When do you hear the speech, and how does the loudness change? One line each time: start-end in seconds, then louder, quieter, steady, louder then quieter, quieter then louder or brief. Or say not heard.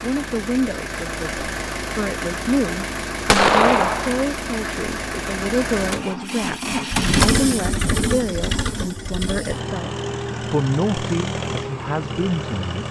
0.0-9.9 steady
10.5-12.8 brief.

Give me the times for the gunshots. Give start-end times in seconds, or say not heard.
3.3-4.2.